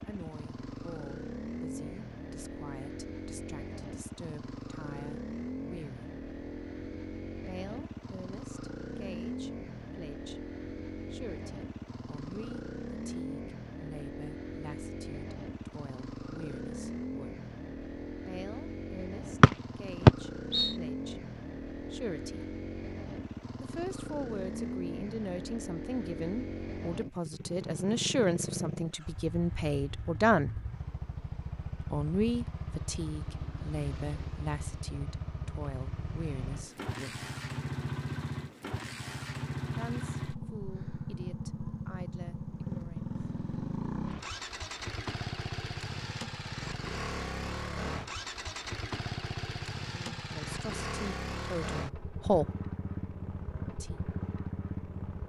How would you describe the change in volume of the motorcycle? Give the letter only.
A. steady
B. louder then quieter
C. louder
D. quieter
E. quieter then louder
A.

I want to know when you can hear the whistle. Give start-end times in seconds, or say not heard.
19.4-20.8.